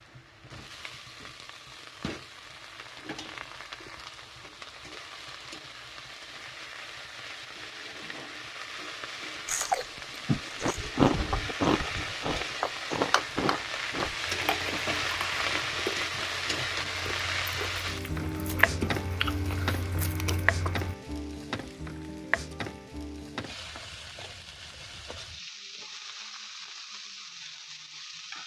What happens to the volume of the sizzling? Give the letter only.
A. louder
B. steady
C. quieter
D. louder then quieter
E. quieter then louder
D.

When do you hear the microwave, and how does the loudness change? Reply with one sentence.
The microwave can't be heard in this clip.